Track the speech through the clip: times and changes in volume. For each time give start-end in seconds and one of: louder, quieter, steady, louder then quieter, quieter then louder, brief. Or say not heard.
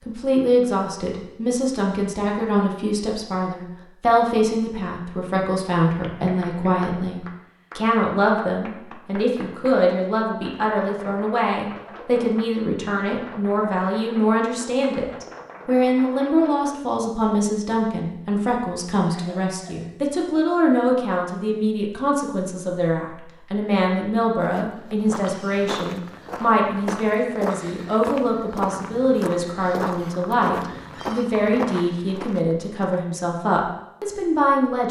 0.0-34.8 steady.